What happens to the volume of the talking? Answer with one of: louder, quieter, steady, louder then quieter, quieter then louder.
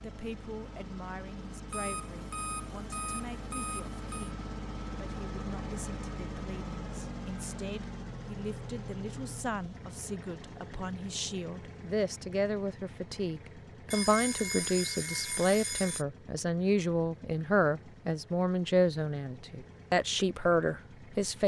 louder.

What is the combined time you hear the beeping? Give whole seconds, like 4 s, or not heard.
5 s.